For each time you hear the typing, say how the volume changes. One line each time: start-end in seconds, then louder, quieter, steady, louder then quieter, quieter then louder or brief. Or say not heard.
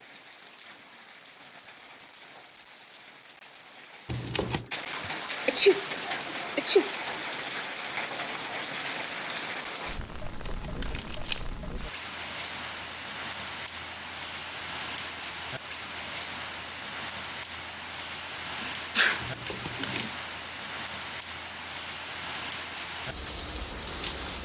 not heard.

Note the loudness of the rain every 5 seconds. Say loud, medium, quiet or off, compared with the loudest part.
medium, loud, loud, loud, loud.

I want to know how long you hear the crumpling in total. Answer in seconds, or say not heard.
3 s.